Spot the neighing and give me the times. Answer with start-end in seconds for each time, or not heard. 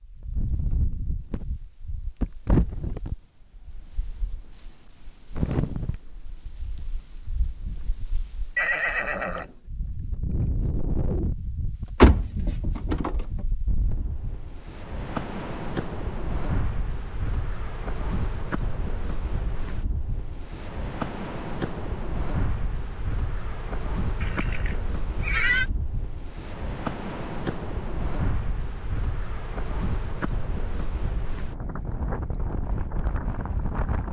8.6-9.6, 24.2-25.6.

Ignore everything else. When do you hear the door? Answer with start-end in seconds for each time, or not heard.
12.0-13.2.